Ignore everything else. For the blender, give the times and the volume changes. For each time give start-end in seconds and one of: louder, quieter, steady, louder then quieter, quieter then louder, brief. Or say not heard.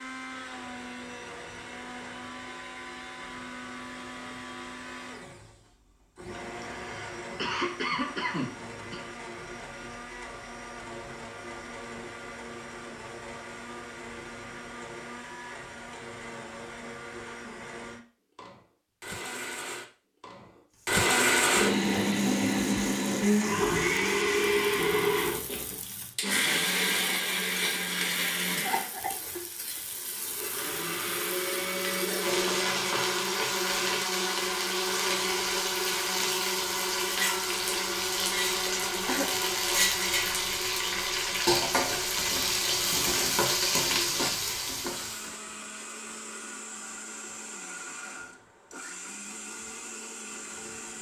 0.0-50.9 louder then quieter.